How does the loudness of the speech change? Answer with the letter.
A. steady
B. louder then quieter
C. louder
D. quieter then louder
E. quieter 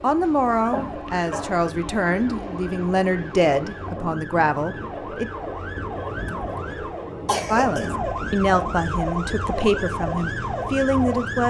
A.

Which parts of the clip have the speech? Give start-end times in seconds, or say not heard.
0.0-5.3, 7.5-11.4.